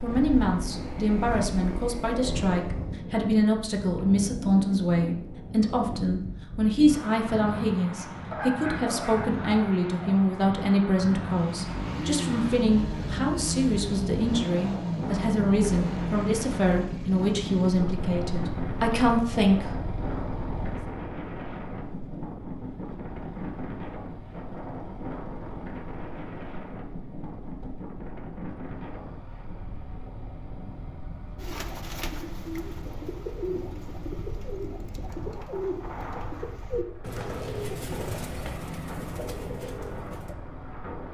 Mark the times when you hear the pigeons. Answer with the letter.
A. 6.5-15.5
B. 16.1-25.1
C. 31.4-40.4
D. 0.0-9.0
C.